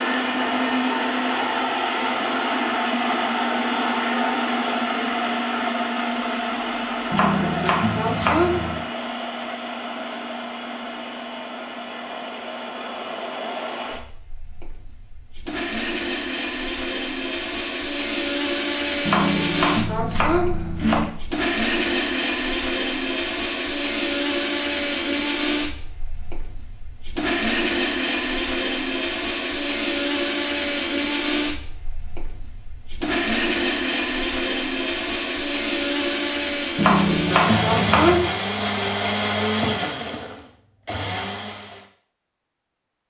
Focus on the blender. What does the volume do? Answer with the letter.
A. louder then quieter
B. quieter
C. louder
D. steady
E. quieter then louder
E.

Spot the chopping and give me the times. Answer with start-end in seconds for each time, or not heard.
7.1-8.8, 19.1-21.1, 36.8-38.3.